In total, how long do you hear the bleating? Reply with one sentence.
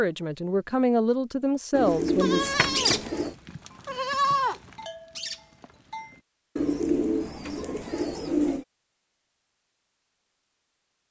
The bleating can be heard for 4 seconds in total.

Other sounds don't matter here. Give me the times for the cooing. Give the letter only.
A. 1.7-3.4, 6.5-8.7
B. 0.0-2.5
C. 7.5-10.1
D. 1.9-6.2
A.